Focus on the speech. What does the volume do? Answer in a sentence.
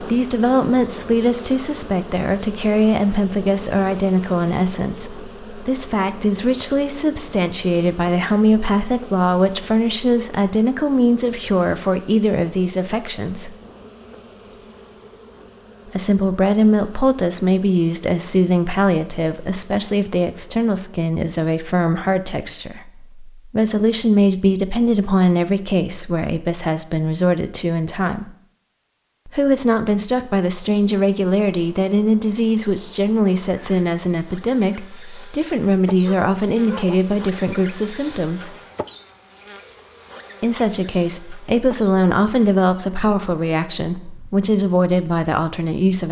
The volume of the speech stays about the same.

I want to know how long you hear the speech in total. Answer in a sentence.
The speech can be heard for 41 seconds in total.